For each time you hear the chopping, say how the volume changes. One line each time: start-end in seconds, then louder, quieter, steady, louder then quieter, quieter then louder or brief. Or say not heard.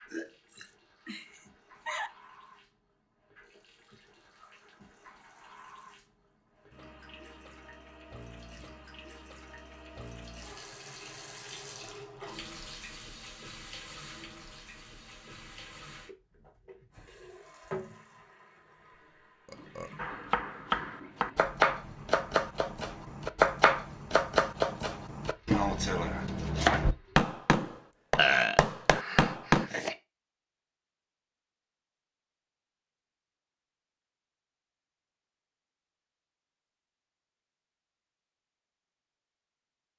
19.9-29.6 steady.